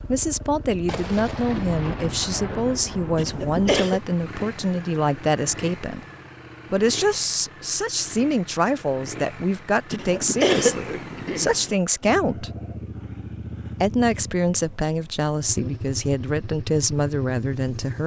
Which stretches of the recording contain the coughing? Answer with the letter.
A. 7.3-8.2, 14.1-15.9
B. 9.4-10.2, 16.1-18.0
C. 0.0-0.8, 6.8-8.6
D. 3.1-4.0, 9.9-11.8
D.